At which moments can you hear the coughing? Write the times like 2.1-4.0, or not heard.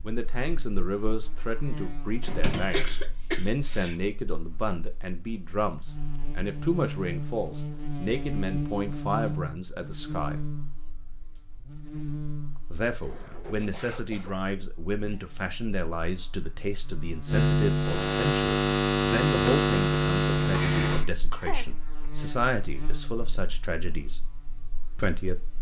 2.5-4.0, 12.6-14.4, 20.5-22.1.